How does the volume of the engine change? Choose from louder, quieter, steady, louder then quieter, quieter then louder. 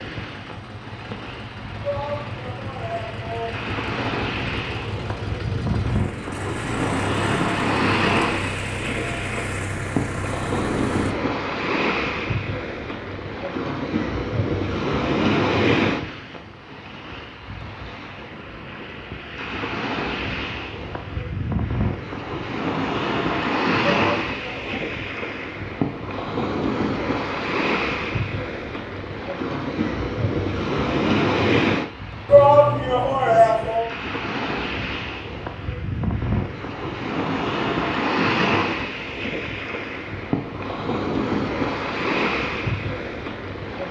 louder.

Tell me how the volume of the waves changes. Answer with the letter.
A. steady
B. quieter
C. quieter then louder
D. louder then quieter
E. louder
A.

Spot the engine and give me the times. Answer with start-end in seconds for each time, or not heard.
0.0-11.2.